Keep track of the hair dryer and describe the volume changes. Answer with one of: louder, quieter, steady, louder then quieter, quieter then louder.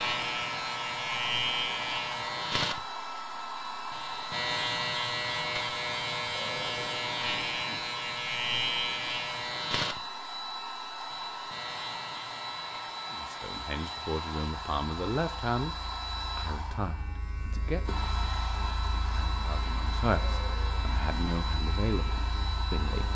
steady.